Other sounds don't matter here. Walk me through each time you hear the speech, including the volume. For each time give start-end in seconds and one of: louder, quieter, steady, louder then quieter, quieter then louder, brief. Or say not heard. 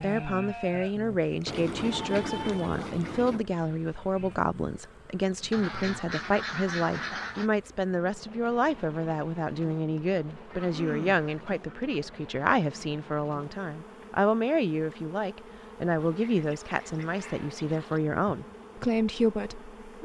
0.0-20.0 steady.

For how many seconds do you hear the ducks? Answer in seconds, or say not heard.
8 s.